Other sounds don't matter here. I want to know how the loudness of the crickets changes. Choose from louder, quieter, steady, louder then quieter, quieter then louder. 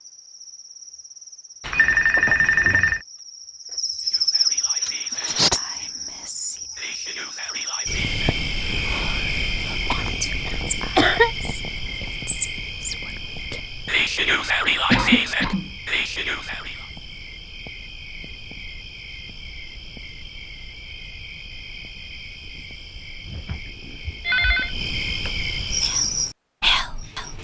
quieter then louder.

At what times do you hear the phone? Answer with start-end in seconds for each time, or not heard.
1.6-3.0, 23.2-24.8.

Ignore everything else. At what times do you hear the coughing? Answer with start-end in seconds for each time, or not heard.
9.9-11.3, 14.9-15.8.